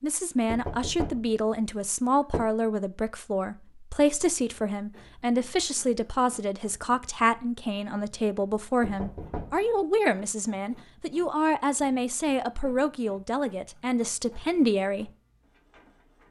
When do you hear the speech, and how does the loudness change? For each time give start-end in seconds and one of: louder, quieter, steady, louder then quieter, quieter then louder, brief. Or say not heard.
0.0-15.1 steady.